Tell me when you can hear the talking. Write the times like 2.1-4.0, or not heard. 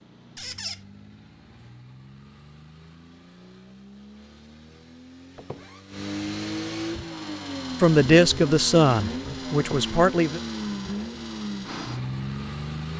7.8-10.4.